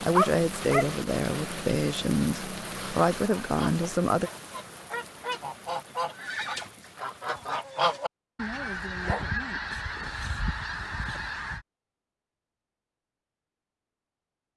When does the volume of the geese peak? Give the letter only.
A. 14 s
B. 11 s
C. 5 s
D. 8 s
D.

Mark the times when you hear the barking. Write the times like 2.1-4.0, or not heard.
0.1-0.9, 8.5-9.3.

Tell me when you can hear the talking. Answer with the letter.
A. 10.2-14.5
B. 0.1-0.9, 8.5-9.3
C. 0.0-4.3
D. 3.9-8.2
C.